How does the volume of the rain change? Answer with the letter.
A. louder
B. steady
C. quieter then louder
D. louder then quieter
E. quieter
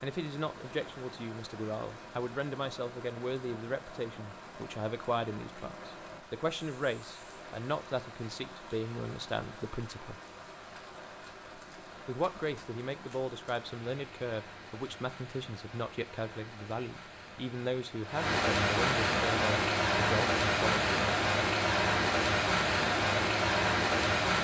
A.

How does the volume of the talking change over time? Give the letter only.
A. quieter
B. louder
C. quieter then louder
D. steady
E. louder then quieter
D.